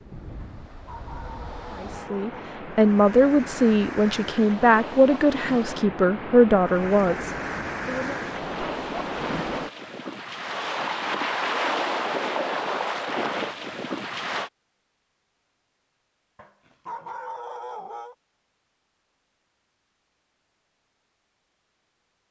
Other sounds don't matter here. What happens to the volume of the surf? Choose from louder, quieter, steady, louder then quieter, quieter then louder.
louder.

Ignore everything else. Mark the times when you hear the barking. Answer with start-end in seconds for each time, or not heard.
0.4-2.4, 16.4-18.1.